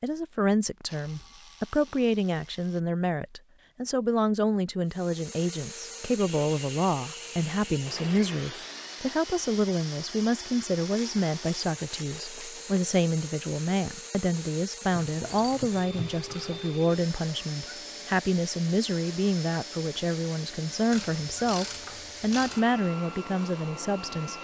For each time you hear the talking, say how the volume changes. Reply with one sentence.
The talking can be heard from 0.0 to 24.3 s, at a steady volume.